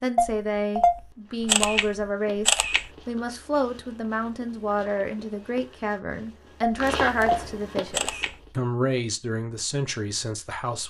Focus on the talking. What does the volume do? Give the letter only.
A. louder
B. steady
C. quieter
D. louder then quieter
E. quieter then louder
B.